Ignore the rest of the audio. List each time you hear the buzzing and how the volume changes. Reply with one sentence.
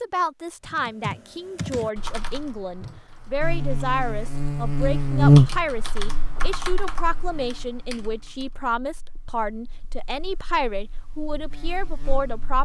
You can hear the buzzing from 3.4 to 12.5 s, getting quieter then louder.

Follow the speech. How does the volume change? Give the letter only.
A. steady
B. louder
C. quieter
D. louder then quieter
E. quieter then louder
A.